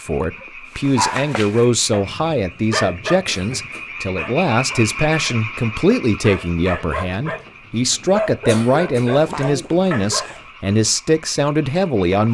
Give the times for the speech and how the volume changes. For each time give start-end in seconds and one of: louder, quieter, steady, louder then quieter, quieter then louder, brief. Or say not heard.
0.0-12.2 steady.